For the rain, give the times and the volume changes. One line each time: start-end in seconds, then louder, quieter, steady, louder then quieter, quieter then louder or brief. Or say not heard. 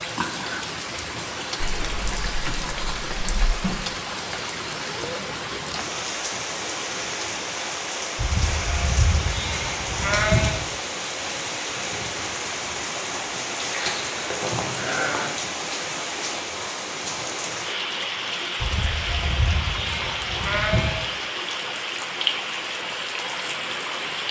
0.0-24.2 steady.